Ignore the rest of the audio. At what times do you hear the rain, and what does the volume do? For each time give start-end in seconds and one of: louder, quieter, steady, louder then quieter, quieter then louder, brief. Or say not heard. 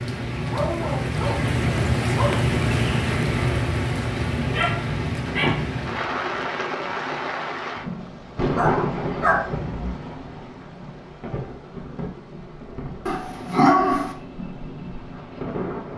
0.0-15.9 quieter.